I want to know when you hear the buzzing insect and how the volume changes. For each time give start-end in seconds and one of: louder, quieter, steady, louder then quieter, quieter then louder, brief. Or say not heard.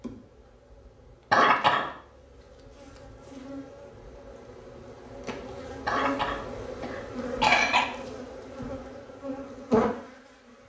0.0-10.6 louder.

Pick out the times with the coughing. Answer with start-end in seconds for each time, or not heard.
1.3-1.9, 5.8-7.8.